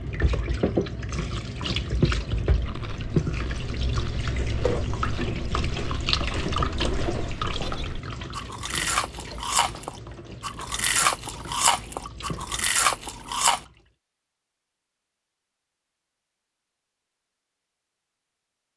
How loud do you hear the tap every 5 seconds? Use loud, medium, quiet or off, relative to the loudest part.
loud, loud, quiet, off.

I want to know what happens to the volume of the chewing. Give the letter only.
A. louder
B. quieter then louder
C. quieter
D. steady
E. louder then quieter
A.